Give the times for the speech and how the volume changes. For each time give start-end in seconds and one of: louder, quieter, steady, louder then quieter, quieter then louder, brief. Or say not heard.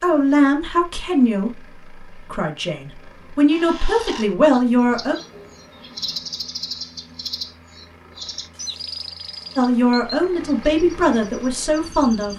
0.0-5.2 quieter then louder
9.6-12.3 brief.